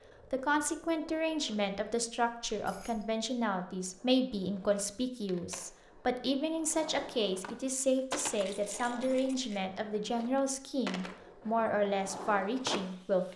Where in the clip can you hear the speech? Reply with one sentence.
You can hear the speech from 0.3 to 13.3 s.